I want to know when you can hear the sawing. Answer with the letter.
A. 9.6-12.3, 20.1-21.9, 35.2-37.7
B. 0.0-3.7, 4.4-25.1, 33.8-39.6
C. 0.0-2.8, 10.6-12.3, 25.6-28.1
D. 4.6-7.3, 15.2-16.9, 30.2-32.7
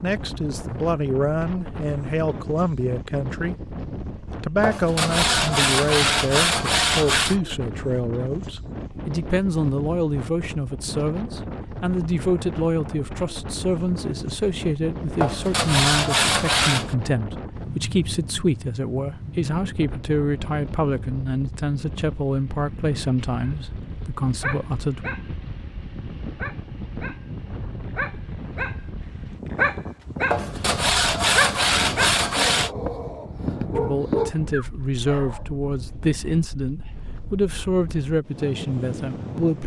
D.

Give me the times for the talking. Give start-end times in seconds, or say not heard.
0.0-3.7, 4.4-25.1, 33.8-39.6.